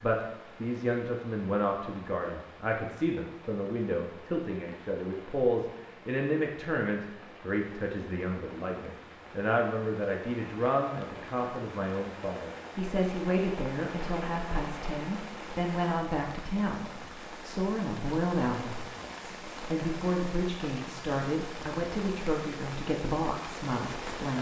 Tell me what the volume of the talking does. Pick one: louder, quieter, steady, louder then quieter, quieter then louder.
steady.